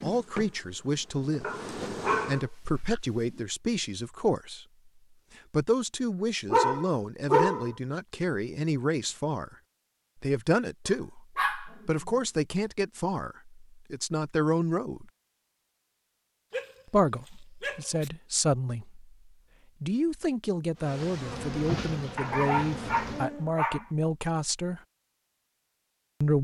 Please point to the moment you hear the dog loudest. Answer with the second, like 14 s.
7 s.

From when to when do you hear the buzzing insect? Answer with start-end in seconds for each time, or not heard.
0.0-2.4, 20.8-23.5.